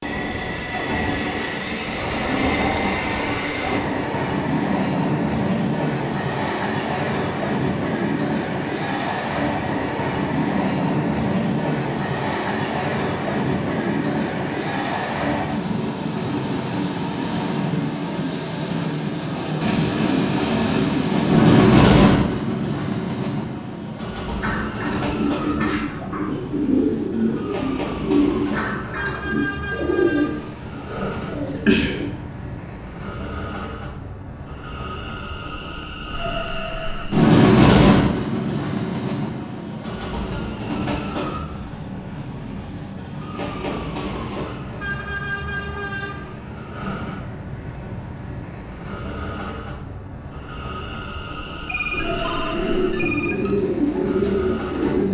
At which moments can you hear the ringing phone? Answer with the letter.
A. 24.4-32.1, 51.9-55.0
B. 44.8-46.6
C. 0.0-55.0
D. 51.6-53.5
D.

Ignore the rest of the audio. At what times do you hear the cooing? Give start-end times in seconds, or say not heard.
24.4-32.1, 51.9-55.0.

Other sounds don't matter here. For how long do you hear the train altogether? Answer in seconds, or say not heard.
55 s.